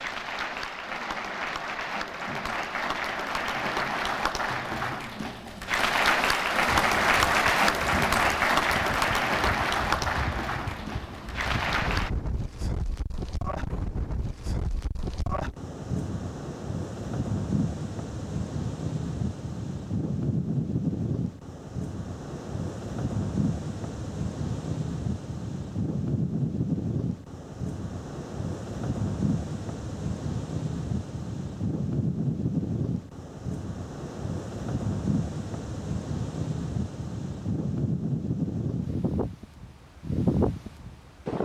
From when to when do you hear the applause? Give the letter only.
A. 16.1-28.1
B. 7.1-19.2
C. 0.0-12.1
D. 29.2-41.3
C.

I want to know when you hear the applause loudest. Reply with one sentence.
The loudest moment of the applause is at 7 seconds.